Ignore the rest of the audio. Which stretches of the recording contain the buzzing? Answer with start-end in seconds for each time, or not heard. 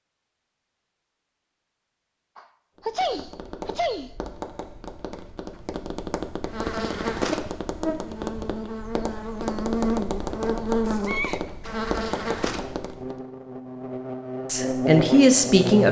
6.5-15.8.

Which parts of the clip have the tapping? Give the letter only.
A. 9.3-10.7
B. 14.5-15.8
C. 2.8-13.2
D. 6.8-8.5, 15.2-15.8
C.